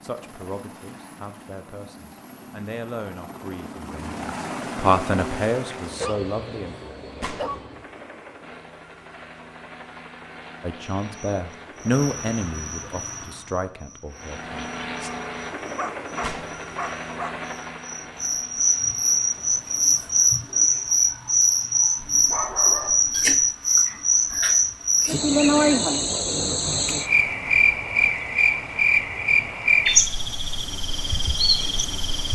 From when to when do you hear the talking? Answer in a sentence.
The talking can be heard from 0.0 to 6.8 s and from 10.6 to 15.1 s.